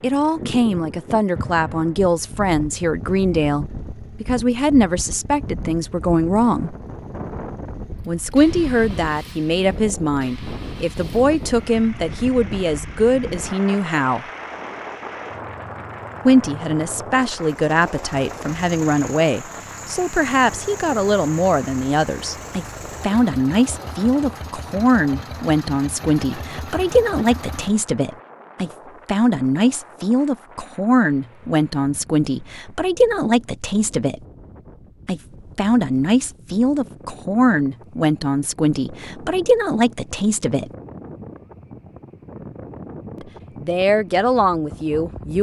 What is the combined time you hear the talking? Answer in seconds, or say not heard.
39 s.